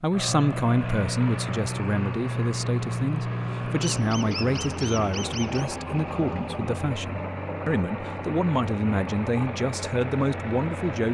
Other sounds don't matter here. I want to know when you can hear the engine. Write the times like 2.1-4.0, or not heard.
0.1-11.0.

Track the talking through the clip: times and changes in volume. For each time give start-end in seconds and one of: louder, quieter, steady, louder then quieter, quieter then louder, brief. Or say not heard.
0.0-11.0 steady.